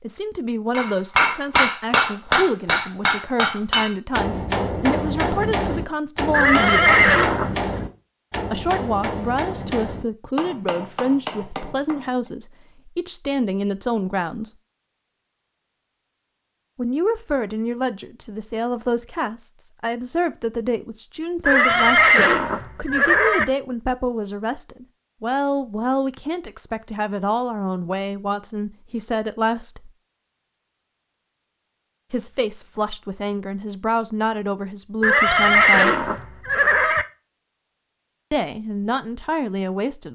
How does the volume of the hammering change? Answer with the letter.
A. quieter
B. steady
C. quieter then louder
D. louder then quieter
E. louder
A.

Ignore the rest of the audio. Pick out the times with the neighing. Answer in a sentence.
You can hear the neighing from 6.3 to 7.7 s, from 21.4 to 23.4 s and from 35.0 to 37.0 s.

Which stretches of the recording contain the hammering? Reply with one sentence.
You can hear the hammering from 0.7 to 12.3 s.